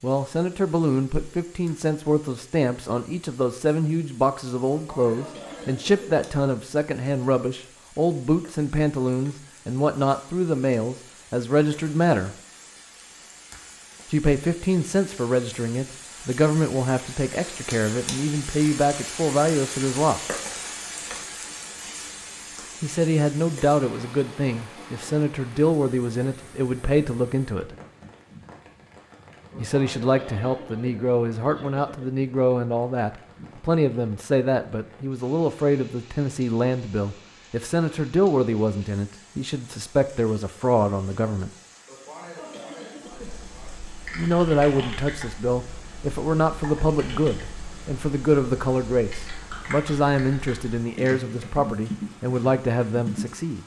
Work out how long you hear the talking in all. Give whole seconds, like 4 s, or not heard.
45 s.